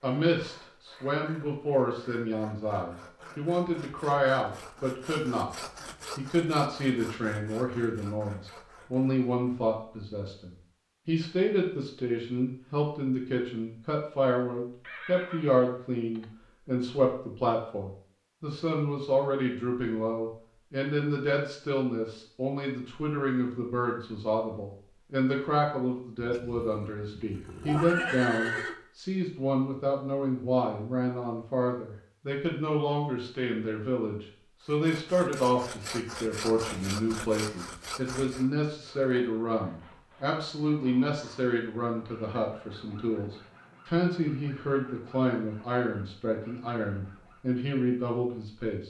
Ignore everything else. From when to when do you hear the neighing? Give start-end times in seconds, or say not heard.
14.8-16.3, 26.2-28.8.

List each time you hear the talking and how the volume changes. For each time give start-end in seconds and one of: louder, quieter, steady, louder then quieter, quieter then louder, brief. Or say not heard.
0.0-48.8 steady.